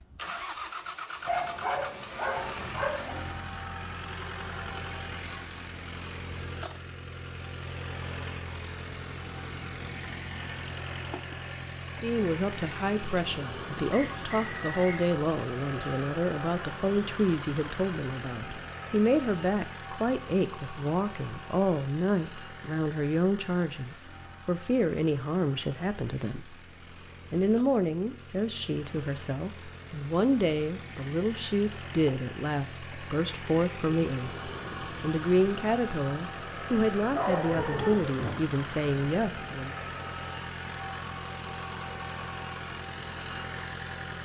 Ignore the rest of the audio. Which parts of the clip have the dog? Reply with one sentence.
The dog can be heard from 1.2 to 3.2 s and from 37.0 to 38.4 s.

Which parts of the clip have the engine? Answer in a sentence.
The engine can be heard from 0.0 to 44.1 s.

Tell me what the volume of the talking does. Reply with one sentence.
The loudness of the talking stays about the same.